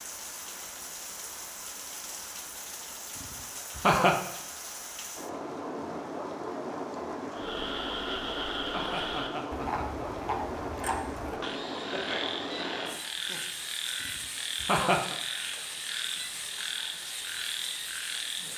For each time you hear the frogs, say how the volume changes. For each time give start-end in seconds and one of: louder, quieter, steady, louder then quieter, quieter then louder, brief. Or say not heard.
7.3-18.5 steady.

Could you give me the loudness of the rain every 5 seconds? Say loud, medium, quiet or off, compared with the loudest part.
medium, loud, loud, medium.